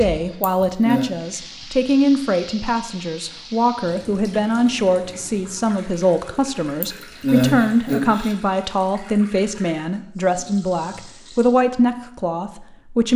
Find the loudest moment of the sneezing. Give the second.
7 s.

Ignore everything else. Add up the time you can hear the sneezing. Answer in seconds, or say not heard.
2 s.